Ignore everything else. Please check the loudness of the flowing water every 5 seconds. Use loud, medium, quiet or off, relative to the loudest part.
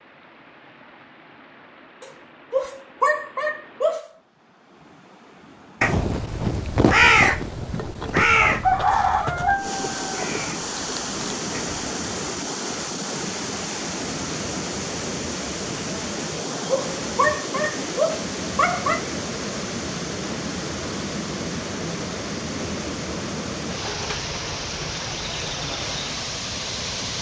quiet, medium, loud, loud, loud, loud.